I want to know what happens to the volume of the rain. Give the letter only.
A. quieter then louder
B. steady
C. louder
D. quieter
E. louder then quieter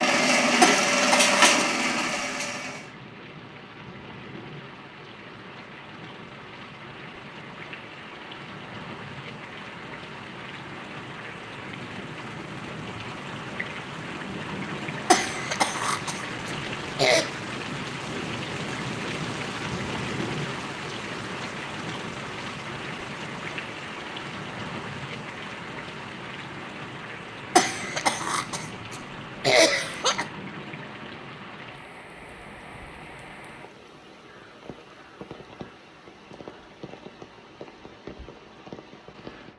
E.